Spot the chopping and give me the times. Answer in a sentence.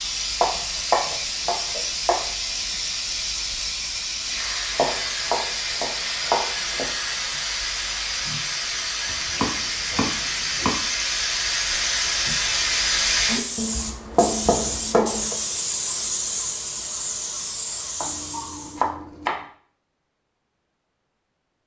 The chopping can be heard from 0.4 to 2.2 s, from 4.8 to 6.8 s, from 9.1 to 10.8 s, from 13.6 to 15.3 s and from 18.0 to 19.4 s.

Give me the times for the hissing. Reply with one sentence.
The hissing can be heard from 0.0 to 18.9 s.